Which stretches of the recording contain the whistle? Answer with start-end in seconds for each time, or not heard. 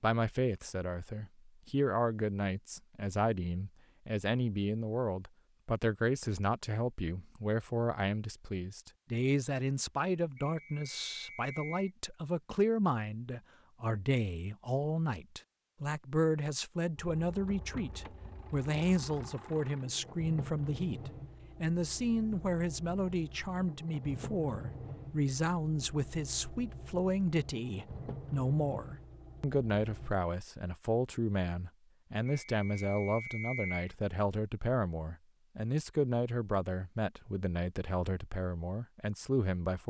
10.4-11.9, 32.2-33.9.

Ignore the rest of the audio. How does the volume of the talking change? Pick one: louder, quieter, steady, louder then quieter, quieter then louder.
steady.